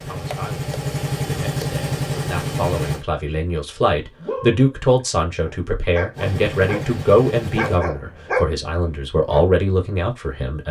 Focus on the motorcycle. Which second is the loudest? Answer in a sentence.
The loudest moment of the motorcycle is at 2 seconds.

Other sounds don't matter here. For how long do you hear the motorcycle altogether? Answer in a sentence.
The motorcycle can be heard for 5 seconds in total.